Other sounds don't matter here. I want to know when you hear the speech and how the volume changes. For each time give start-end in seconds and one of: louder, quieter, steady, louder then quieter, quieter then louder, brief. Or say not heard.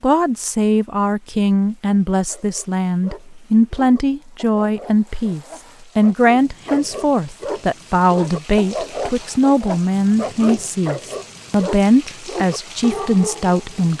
0.0-13.9 steady.